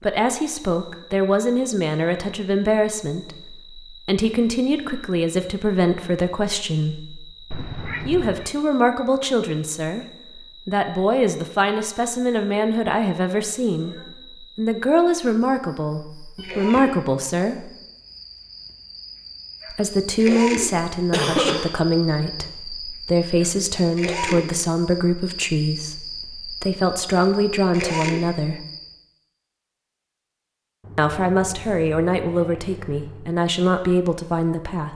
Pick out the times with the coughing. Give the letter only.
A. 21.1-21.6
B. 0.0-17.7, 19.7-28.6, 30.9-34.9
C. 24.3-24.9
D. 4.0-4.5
A.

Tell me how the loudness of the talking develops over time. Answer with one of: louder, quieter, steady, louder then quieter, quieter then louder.
steady.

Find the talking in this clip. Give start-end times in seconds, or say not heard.
0.0-17.7, 19.7-28.6, 30.9-34.9.